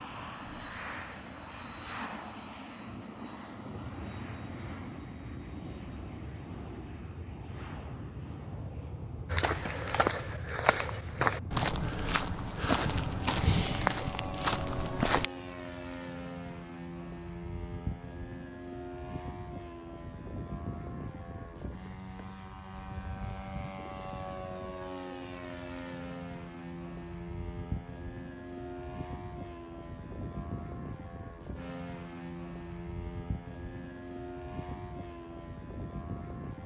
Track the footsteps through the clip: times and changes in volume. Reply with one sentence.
You can hear the footsteps from 9.2 to 15.3 s, at a steady volume.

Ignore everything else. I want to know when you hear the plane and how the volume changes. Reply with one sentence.
The plane can be heard from 0.0 to 36.6 s, at a steady volume.